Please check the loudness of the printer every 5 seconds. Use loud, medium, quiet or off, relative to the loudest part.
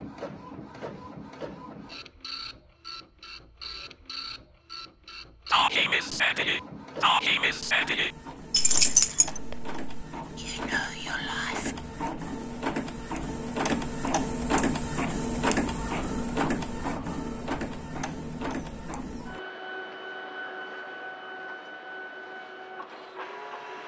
medium, medium, loud, loud, medium.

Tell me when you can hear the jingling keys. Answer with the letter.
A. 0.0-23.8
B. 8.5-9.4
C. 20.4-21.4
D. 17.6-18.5
B.